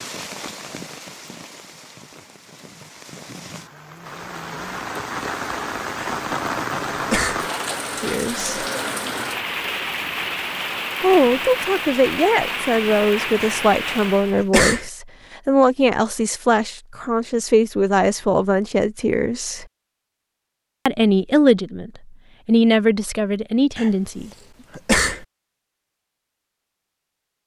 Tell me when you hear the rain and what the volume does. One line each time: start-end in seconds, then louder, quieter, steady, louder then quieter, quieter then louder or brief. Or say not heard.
0.0-14.5 louder.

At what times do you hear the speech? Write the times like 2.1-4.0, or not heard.
8.0-8.7, 11.0-19.6, 20.9-24.3.